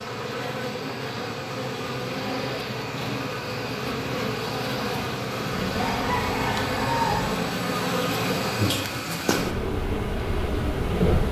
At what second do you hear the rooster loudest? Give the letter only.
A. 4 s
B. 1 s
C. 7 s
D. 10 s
C.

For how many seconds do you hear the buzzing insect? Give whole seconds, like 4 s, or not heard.
11 s.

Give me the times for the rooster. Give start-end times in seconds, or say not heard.
5.7-7.3.